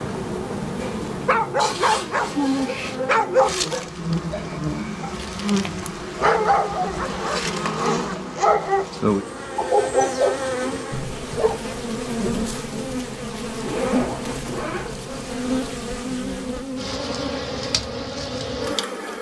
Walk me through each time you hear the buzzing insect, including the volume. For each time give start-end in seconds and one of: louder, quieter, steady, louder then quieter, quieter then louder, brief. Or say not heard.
0.0-19.1 steady.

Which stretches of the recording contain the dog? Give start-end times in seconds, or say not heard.
0.8-11.6.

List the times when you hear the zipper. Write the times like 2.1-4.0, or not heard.
1.6-3.0, 7.1-8.7, 13.6-14.9.